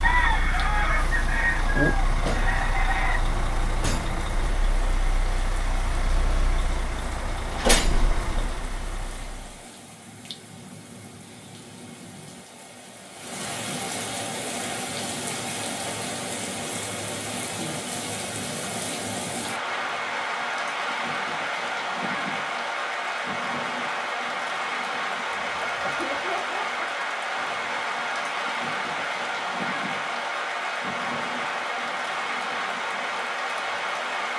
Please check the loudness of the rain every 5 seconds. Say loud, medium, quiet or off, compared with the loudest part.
quiet, quiet, medium, loud, loud, loud, loud.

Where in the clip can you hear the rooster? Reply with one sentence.
You can hear the rooster from 0.0 to 3.2 s and from 25.3 to 26.9 s.